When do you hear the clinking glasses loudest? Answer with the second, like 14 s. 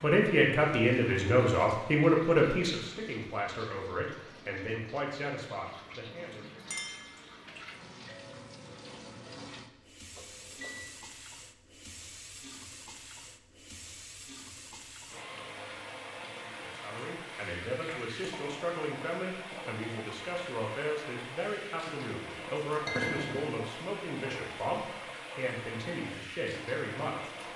23 s.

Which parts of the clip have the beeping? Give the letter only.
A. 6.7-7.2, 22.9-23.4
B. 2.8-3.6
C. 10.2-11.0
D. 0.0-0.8
C.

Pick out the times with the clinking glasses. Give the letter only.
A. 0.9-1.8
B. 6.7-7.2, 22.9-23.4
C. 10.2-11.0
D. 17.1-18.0
B.